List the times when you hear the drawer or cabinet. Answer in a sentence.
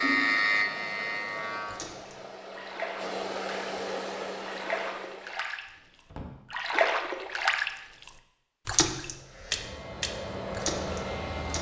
You can hear the drawer or cabinet from 5.7 to 6.3 s.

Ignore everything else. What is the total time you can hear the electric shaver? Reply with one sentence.
You can hear the electric shaver for 4 seconds altogether.